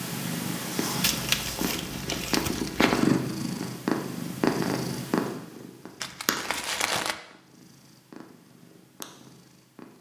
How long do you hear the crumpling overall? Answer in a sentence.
The crumpling can be heard for 3 seconds in total.